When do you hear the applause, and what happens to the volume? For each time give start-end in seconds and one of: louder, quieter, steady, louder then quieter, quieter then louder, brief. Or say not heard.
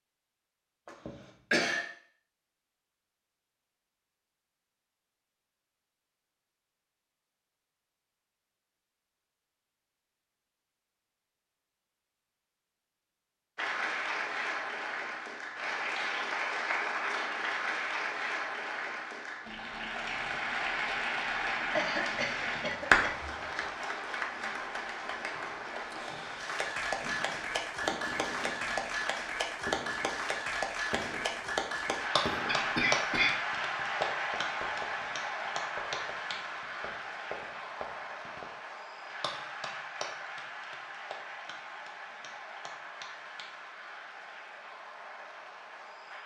13.6-46.2 quieter.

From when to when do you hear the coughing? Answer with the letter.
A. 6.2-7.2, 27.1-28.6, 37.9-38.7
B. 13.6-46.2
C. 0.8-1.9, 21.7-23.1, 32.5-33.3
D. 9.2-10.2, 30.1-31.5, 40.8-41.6
C.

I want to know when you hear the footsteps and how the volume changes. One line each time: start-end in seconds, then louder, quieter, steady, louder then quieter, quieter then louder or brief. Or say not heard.
not heard.